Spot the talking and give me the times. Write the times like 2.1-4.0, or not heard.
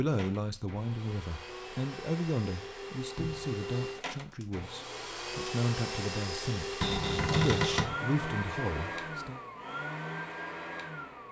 0.0-9.4.